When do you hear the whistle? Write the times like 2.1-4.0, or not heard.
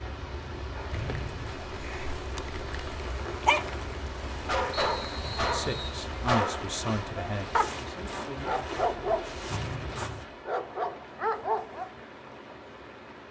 0.9-1.6, 4.7-6.0, 9.5-10.3.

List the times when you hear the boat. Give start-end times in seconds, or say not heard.
0.0-10.4.